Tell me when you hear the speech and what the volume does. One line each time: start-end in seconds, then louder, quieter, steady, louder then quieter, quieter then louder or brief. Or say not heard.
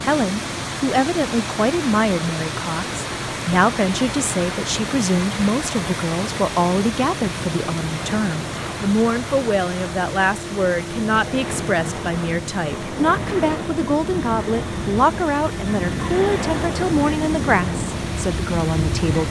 0.0-19.2 steady.